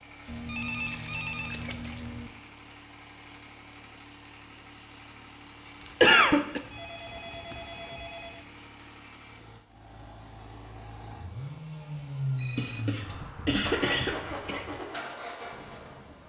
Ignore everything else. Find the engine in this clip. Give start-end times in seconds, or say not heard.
0.0-16.2.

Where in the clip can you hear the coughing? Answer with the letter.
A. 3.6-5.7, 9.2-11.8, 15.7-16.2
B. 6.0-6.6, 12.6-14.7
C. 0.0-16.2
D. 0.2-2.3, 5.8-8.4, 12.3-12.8
B.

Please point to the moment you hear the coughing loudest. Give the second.
6 s.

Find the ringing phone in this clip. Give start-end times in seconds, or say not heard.
0.2-2.3, 5.8-8.4, 12.3-12.8.